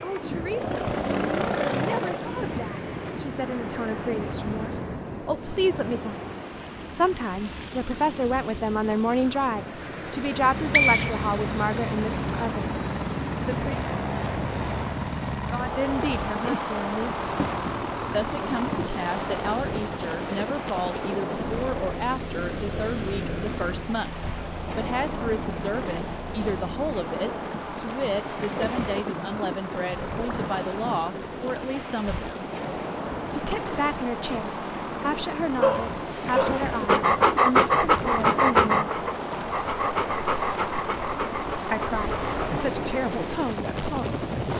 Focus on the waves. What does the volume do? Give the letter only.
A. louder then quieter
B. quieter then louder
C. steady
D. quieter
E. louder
C.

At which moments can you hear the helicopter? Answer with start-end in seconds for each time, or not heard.
0.0-2.4, 10.2-44.5.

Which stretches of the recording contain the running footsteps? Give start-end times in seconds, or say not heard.
not heard.